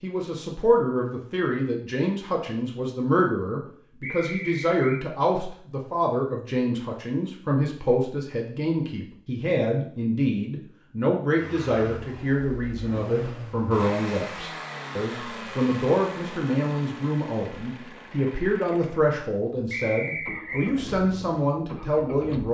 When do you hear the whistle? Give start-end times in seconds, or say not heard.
4.0-5.0, 19.7-20.7.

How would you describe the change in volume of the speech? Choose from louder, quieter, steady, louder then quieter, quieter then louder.
steady.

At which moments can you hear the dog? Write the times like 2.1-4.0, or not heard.
not heard.